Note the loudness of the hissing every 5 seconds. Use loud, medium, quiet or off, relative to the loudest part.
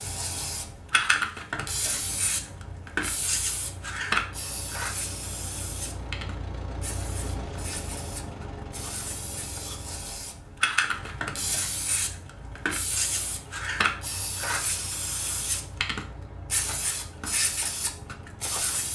loud, medium, loud, loud.